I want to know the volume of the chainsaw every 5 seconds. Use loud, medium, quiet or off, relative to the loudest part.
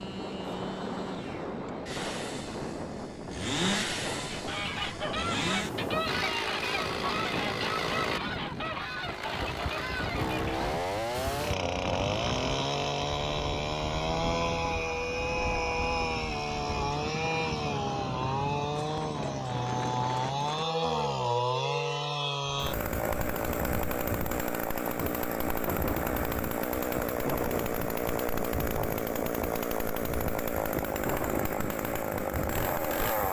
medium, medium, loud, loud, loud, loud, loud.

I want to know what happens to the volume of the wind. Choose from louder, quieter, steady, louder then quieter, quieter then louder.
steady.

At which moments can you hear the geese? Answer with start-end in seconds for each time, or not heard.
4.1-10.7.